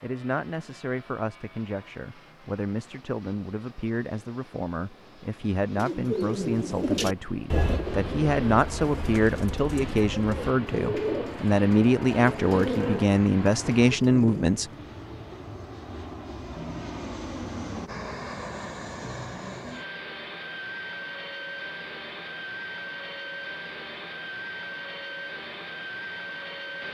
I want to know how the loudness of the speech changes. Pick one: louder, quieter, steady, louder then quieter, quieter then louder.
louder.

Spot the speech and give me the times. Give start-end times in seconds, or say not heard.
0.0-14.7.